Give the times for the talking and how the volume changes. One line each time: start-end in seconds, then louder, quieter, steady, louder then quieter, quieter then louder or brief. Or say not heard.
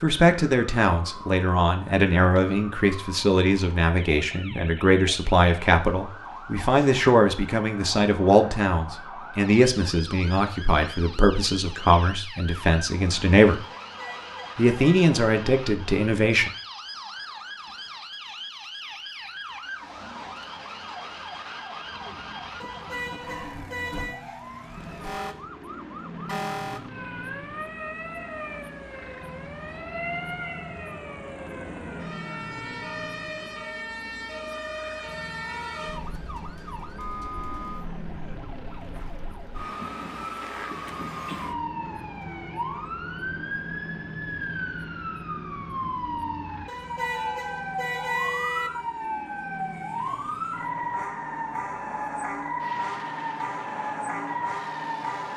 0.0-13.6 steady
14.6-16.5 brief.